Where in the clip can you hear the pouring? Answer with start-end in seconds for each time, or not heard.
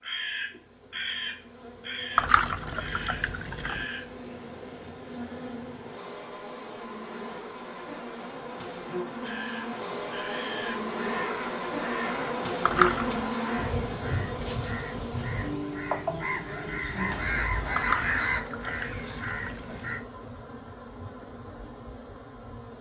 2.1-3.9, 12.7-13.2, 17.8-19.6.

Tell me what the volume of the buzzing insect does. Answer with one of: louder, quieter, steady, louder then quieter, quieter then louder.
louder then quieter.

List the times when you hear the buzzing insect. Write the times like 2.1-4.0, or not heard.
0.0-22.7.